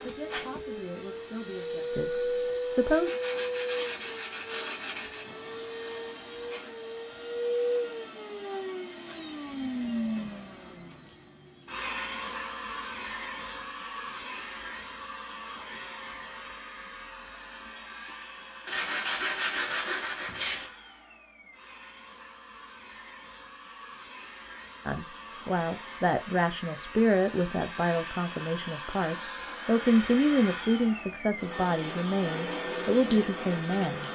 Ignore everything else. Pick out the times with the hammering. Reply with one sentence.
The hammering can't be heard in this clip.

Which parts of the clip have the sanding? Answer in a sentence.
You can hear the sanding from 2.9 to 5.2 s and from 18.6 to 20.7 s.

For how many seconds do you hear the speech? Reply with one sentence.
You can hear the speech for 12 seconds altogether.